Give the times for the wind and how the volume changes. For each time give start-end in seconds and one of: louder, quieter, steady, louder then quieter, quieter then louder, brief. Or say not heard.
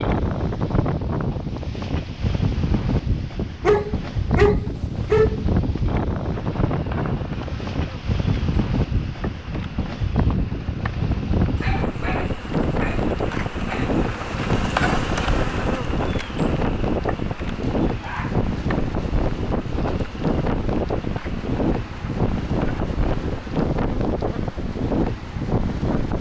0.0-26.1 steady.